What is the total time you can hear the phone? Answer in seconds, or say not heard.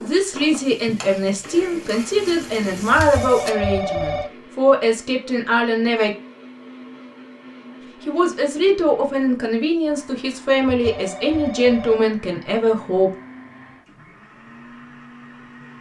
3 s.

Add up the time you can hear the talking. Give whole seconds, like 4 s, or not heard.
11 s.